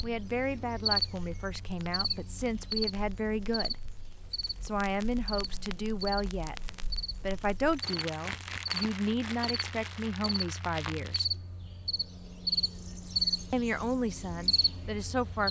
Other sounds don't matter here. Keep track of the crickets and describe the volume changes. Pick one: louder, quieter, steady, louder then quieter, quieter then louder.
quieter then louder.